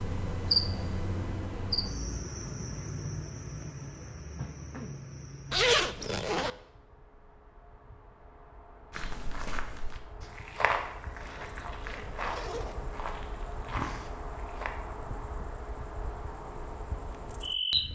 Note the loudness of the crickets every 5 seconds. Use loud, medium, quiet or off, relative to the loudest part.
loud, quiet, medium, loud.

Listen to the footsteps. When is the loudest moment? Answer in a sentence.
The loudest moment of the footsteps is at 11 seconds.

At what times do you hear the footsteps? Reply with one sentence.
The footsteps can be heard from 8.9 to 14.8 s.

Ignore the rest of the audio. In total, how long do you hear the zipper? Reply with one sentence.
The zipper can be heard for 3 seconds in total.